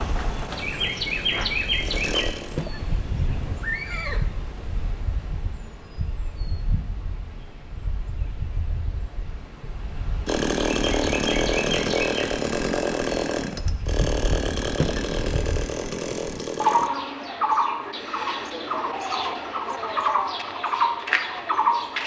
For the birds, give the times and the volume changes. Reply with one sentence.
The birds can be heard from 0.0 to 22.0 s, getting quieter then louder.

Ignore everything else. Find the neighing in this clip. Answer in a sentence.
The neighing can be heard from 2.5 to 4.3 s and from 14.8 to 15.4 s.